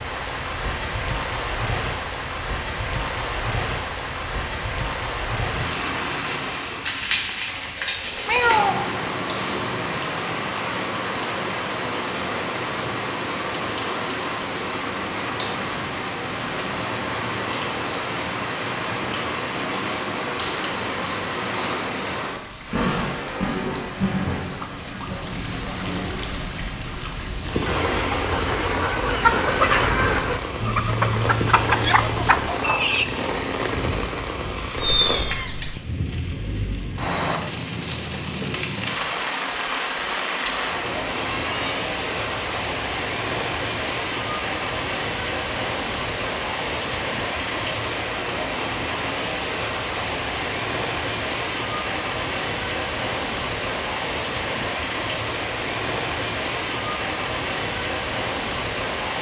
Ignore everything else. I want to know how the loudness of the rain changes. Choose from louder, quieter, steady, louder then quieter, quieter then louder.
steady.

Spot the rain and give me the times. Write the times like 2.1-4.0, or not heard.
0.0-59.1.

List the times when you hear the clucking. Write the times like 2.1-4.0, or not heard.
27.6-33.0.